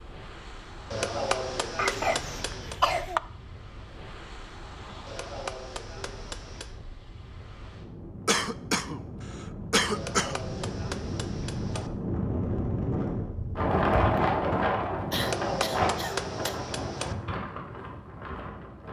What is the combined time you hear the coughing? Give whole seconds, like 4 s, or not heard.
5 s.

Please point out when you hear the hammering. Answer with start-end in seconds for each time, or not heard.
0.9-2.8, 5.0-6.8, 9.9-11.9, 15.2-17.1.